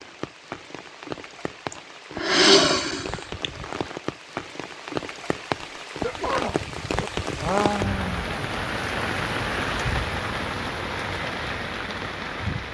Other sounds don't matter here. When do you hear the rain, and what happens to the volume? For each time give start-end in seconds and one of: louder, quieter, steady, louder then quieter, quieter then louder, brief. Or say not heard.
0.0-12.6 louder.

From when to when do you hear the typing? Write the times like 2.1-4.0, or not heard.
not heard.